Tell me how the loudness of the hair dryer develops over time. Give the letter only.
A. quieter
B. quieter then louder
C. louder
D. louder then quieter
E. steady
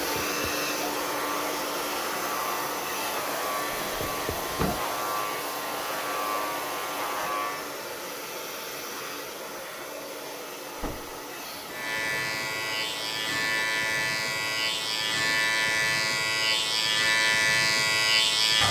A.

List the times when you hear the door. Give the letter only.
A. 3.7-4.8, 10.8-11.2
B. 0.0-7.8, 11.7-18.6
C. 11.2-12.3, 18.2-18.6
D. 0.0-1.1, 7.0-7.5
A.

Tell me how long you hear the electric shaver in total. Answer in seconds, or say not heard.
15 s.